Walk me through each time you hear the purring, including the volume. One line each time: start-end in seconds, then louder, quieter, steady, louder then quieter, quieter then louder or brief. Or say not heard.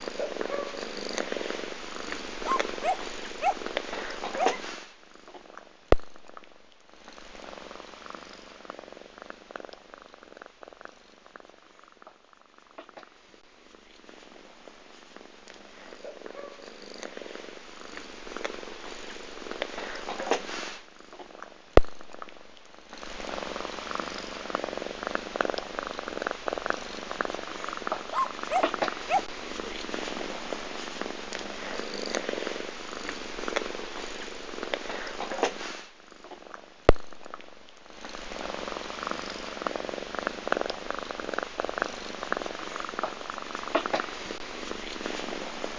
0.0-45.7 quieter then louder.